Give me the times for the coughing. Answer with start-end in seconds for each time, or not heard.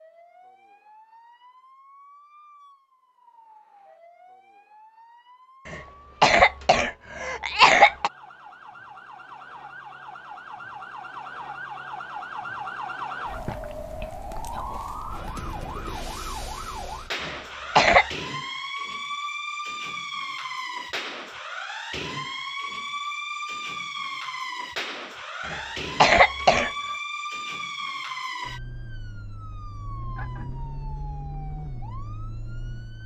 5.7-8.1, 17.2-18.1, 25.4-26.7.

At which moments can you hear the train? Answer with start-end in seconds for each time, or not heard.
not heard.